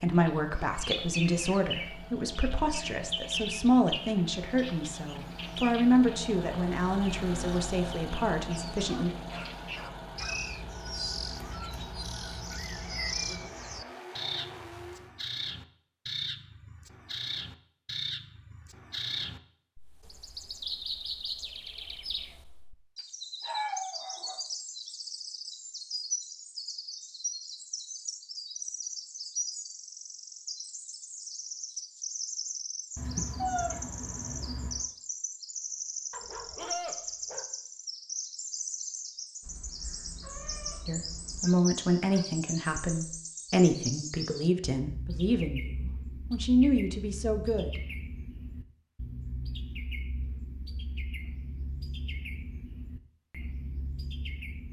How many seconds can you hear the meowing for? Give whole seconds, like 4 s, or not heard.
6 s.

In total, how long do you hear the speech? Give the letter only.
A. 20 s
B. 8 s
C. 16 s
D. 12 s
C.